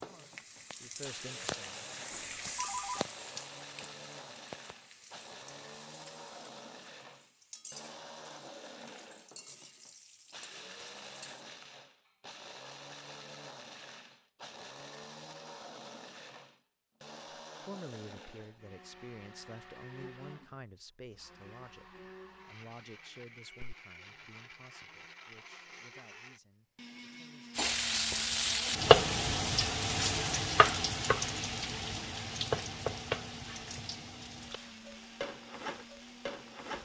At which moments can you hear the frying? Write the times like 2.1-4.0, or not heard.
0.0-11.4, 27.6-36.7.